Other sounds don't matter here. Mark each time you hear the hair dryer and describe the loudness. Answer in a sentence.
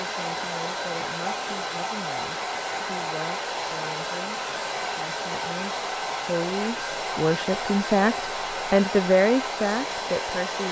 You can hear the hair dryer from 0.0 to 10.6 s, at a steady volume.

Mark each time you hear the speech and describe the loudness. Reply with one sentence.
The speech can be heard from 0.0 to 10.6 s, getting louder.